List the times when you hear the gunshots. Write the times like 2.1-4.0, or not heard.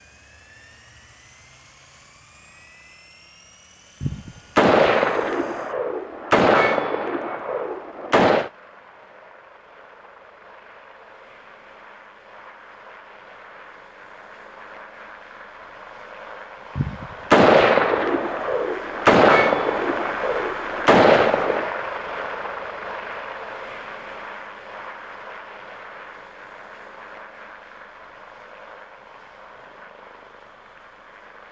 4.0-8.5, 16.8-21.6.